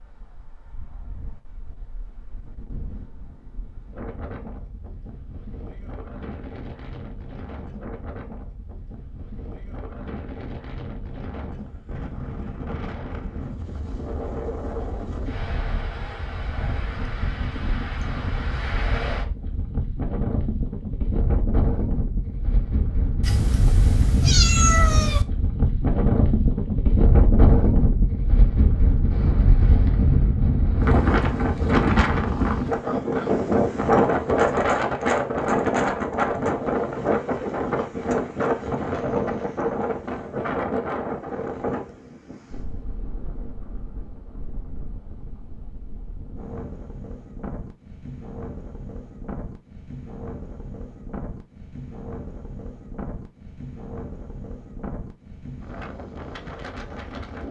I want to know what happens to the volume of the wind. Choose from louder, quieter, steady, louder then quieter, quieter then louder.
louder then quieter.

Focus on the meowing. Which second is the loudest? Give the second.
25 s.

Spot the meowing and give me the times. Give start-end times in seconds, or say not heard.
23.2-25.2.